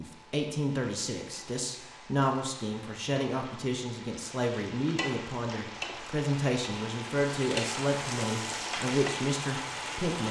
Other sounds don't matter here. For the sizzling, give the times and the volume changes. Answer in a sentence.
You can hear the sizzling from 0.0 to 10.2 s, getting louder.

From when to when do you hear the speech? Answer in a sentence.
The speech can be heard from 0.0 to 10.2 s.